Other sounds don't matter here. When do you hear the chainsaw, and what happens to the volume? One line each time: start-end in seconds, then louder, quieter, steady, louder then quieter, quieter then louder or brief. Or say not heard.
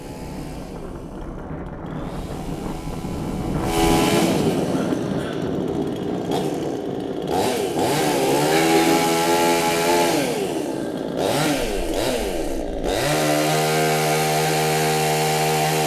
0.0-15.8 louder.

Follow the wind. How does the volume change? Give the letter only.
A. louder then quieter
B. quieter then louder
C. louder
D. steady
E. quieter
A.